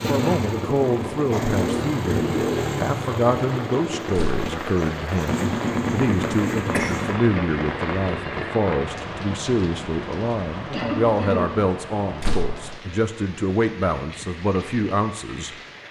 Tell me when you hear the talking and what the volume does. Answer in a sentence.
You can hear the talking from 0.1 to 15.6 s, at a steady volume.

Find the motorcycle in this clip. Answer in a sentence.
You can hear the motorcycle from 0.0 to 7.2 s.